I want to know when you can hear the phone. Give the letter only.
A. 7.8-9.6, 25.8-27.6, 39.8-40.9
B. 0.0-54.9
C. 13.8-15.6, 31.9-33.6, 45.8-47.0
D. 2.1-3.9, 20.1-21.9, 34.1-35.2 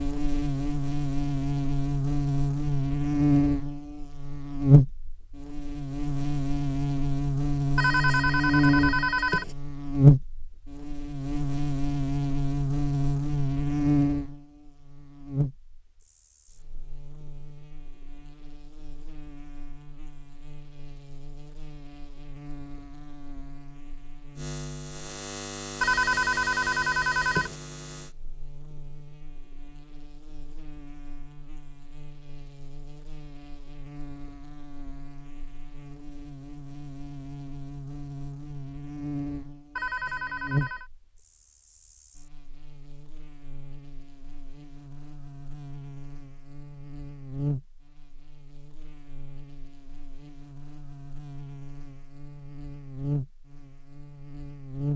A.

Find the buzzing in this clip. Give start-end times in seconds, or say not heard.
0.0-54.9.